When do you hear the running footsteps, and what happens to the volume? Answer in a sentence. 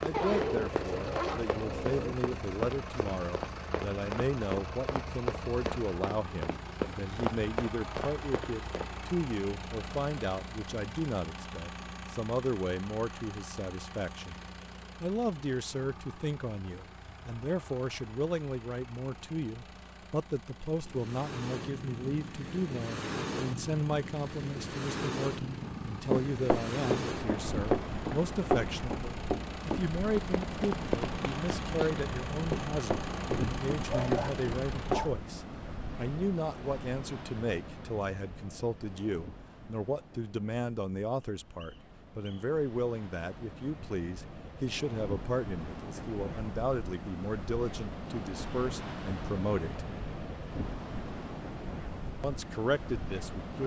The running footsteps can be heard from 0.0 to 9.1 s, at a steady volume; and from 25.6 to 35.1 s, getting quieter.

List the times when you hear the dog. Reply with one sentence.
The dog can be heard from 0.1 to 2.1 s and from 33.9 to 35.2 s.